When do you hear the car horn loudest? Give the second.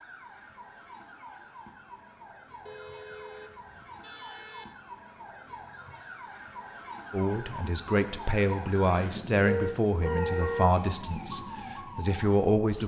10 s.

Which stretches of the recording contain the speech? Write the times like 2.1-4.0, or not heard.
7.1-12.8.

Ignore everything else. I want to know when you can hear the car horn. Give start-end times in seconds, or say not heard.
2.6-4.7, 9.4-10.8.